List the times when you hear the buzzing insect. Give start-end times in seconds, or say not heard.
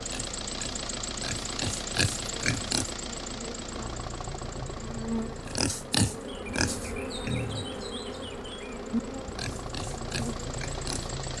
0.0-11.3.